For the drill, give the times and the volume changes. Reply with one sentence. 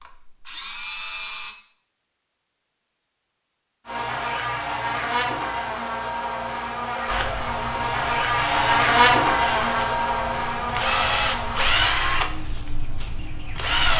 The drill can be heard briefly from 0.0 to 1.6 s; and from 7.0 to 13.9 s, getting louder then quieter.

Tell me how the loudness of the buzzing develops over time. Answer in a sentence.
The volume of the buzzing goes up, then down.